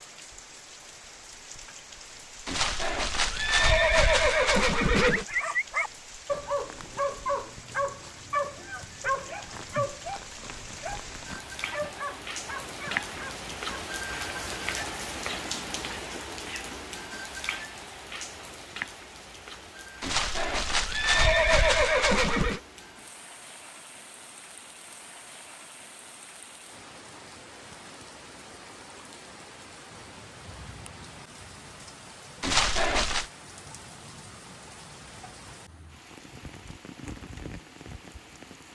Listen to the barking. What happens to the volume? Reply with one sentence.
The loudness of the barking goes down.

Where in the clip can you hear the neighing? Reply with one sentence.
The neighing can be heard from 2.5 to 5.2 s, from 20.0 to 22.6 s and from 32.4 to 33.3 s.